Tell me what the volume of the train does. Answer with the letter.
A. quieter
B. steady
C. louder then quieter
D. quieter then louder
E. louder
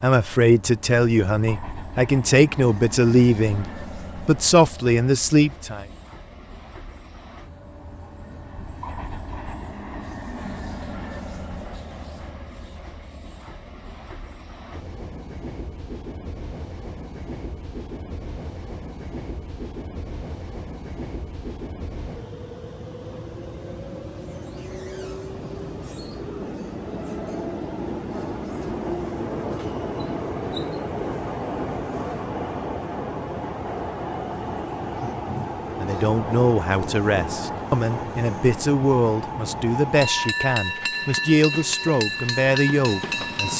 E.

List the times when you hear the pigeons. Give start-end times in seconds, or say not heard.
not heard.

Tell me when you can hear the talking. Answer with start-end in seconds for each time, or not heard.
0.0-5.8, 35.8-43.5.